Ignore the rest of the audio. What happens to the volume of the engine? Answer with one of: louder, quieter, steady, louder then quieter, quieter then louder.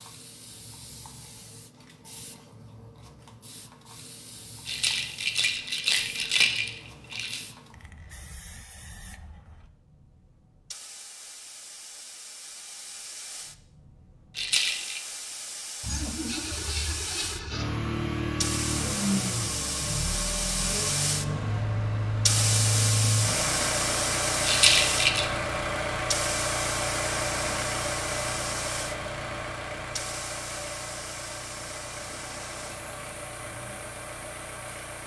quieter.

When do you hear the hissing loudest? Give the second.
23 s.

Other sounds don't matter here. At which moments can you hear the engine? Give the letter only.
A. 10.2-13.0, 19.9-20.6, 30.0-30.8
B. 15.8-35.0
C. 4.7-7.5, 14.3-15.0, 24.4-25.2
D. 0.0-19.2
B.